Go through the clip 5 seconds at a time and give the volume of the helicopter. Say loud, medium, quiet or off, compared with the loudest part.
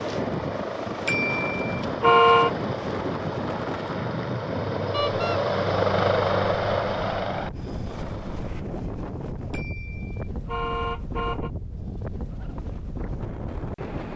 medium, loud, off.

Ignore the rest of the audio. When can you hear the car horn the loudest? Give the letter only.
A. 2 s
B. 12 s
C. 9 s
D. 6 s
A.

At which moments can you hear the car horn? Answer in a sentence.
You can hear the car horn from 1.1 to 2.5 s, from 4.9 to 5.4 s and from 9.5 to 11.5 s.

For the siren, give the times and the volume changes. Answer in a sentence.
The siren can't be heard in this clip.